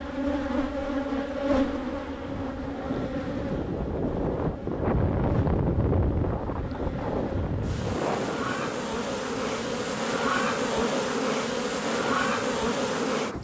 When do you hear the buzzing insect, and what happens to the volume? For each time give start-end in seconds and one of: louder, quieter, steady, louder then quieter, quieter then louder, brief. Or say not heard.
0.0-13.3 quieter then louder.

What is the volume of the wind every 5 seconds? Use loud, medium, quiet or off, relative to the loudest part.
loud, loud, medium.